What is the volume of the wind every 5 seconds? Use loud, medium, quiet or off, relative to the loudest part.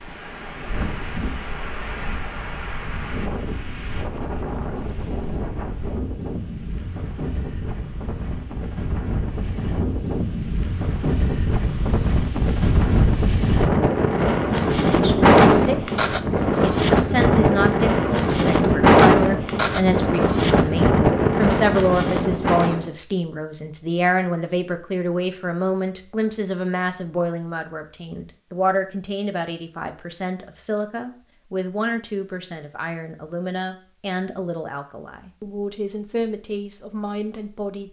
quiet, quiet, medium, loud, loud, off, off, off.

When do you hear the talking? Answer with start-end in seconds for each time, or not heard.
14.7-37.8.